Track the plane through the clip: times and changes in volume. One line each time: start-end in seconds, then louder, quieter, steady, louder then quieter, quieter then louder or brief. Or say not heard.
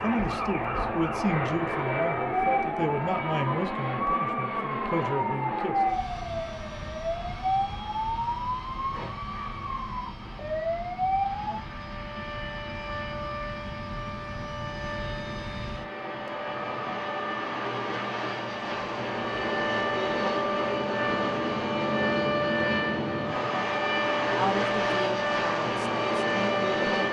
0.0-27.0 quieter then louder.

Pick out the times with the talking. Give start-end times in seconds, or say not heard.
0.0-5.8, 24.3-27.0.